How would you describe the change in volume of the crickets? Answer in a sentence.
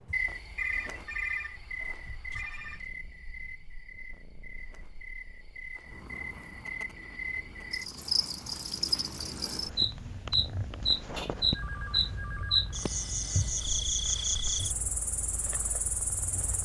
The loudness of the crickets goes down, then up.